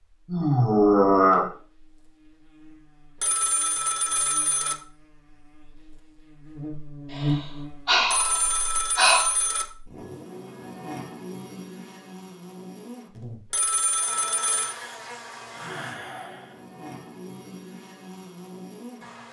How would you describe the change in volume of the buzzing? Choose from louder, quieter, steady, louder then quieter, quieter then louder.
louder then quieter.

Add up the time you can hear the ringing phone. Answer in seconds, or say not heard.
4 s.